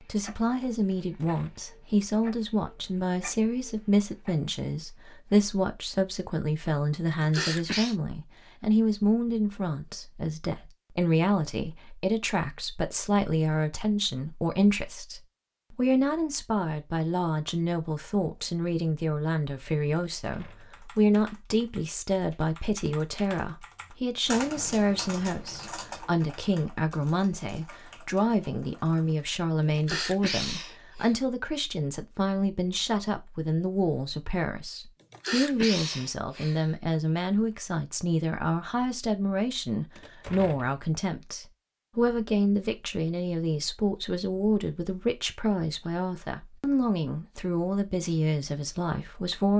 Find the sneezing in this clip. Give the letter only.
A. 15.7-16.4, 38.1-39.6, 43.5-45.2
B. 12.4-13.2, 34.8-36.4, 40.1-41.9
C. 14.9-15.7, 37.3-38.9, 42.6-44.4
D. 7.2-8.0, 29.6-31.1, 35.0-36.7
D.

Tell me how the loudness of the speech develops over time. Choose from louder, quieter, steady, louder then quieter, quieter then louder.
steady.